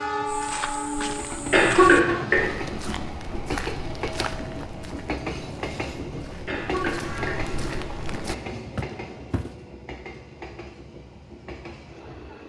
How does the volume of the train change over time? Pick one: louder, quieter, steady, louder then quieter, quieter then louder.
quieter.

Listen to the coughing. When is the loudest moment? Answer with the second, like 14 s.
2 s.